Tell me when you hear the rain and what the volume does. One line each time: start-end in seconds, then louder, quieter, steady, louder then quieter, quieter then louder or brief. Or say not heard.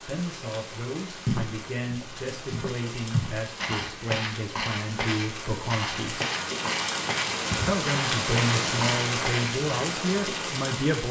0.0-11.0 louder.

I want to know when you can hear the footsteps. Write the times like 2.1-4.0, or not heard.
1.2-9.6.